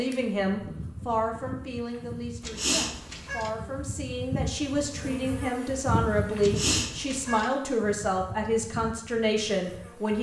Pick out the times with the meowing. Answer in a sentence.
You can hear the meowing from 2.4 to 3.5 s and from 6.4 to 7.5 s.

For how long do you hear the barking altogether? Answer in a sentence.
The barking can't be heard in this clip.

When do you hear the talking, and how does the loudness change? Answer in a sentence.
You can hear the talking from 0.0 to 10.1 s, getting quieter then louder.